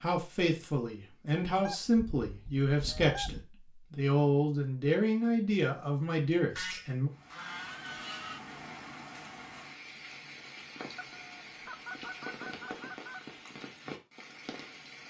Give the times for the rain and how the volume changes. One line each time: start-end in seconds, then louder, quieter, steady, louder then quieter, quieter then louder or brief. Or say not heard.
7.1-15.0 steady.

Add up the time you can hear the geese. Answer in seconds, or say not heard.
6 s.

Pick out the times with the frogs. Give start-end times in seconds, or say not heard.
not heard.